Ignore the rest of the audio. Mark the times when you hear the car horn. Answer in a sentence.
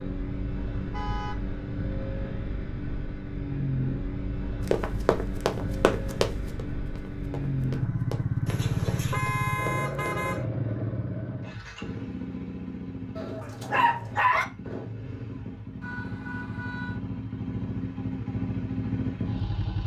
The car horn can be heard from 0.9 to 1.4 s, from 8.4 to 10.4 s and from 15.8 to 17.0 s.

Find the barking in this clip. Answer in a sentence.
You can hear the barking from 13.2 to 14.4 s.